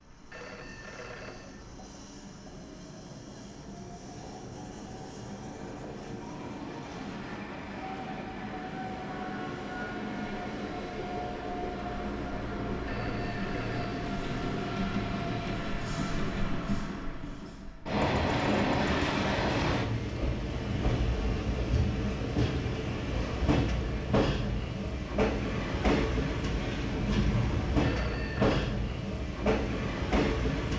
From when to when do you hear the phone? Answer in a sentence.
You can hear the phone from 0.3 to 1.6 s, from 12.8 to 14.1 s and from 27.8 to 28.7 s.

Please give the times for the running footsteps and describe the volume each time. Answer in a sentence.
The running footsteps can't be heard in this clip.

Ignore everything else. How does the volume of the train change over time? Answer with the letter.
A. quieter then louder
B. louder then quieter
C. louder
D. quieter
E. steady
C.